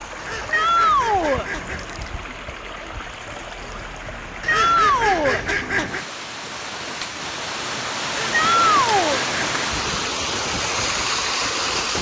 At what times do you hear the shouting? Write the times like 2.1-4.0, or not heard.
0.5-1.4, 4.5-5.4, 8.3-9.2.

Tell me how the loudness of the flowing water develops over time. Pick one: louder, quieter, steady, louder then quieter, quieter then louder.
louder.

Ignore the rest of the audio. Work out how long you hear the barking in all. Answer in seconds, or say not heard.
not heard.